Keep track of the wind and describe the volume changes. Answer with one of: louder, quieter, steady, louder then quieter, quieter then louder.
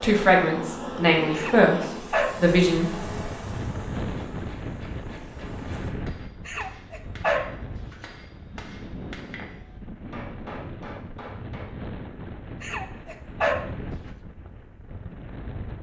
quieter.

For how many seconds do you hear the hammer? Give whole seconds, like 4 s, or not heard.
8 s.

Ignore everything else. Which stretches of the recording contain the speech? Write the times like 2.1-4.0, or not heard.
0.0-3.0.